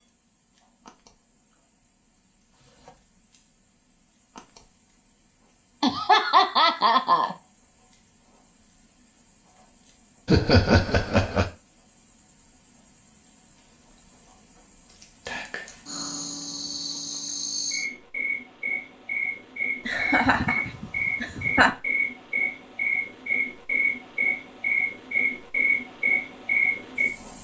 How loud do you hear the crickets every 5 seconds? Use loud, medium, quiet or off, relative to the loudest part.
quiet, quiet, quiet, medium, loud, loud.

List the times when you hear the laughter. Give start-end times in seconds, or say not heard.
5.8-7.3, 10.2-11.5, 19.9-21.8.